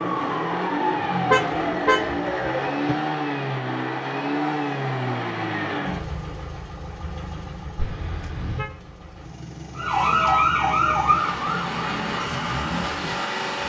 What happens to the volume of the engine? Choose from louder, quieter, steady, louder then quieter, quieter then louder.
quieter then louder.